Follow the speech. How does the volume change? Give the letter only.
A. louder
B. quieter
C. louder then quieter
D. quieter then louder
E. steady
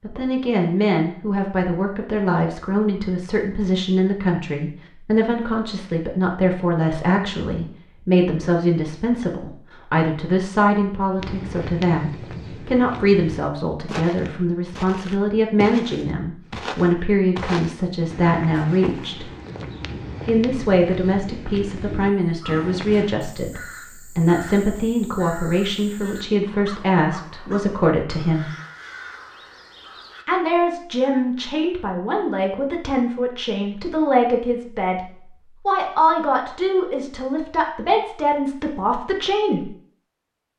E.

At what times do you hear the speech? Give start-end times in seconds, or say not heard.
0.0-19.2, 20.2-28.5, 30.2-35.0, 35.6-39.7.